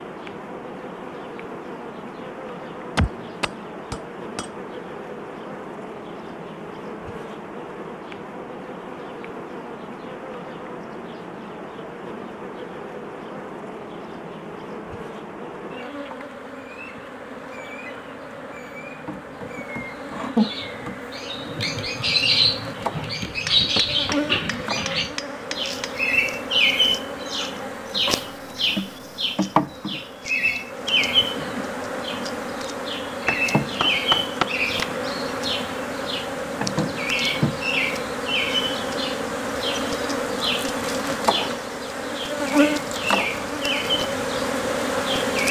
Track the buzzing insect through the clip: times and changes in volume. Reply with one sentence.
You can hear the buzzing insect from 0.0 to 45.4 s, getting louder.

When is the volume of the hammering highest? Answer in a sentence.
The loudest moment of the hammering is at 34 seconds.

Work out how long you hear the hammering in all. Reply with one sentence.
You can hear the hammering for 6 seconds altogether.